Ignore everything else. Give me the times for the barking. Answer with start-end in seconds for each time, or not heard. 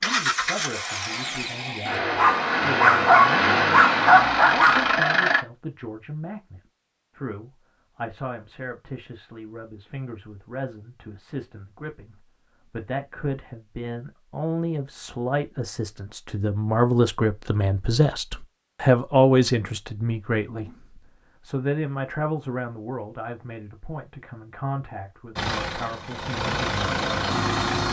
2.1-4.8.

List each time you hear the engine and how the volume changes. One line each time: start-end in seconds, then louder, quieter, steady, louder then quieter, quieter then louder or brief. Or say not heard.
0.0-5.5 louder
25.4-27.8 brief.